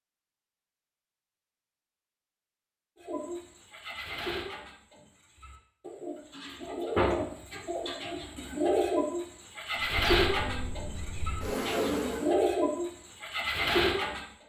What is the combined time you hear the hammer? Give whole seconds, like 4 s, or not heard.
not heard.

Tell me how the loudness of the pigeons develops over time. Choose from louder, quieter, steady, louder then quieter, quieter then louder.
louder.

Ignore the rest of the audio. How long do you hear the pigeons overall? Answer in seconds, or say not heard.
11 s.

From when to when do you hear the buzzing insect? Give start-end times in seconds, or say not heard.
9.8-12.3.